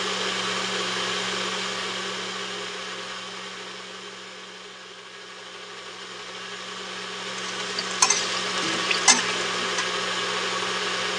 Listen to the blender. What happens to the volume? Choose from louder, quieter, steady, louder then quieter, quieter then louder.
quieter then louder.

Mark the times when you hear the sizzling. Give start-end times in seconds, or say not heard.
7.3-9.8.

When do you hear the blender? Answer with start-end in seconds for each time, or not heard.
0.0-11.1.